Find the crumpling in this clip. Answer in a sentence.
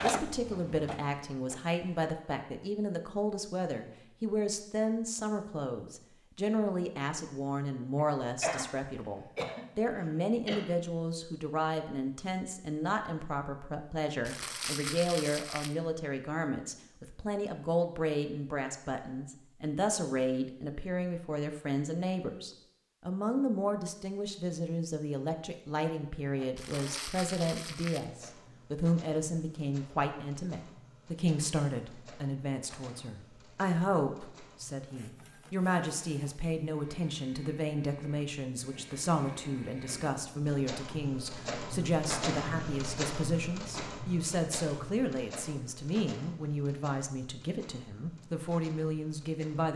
You can hear the crumpling from 14.2 to 15.8 s and from 26.6 to 28.1 s.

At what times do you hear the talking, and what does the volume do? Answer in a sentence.
You can hear the talking from 0.0 to 49.7 s, at a steady volume.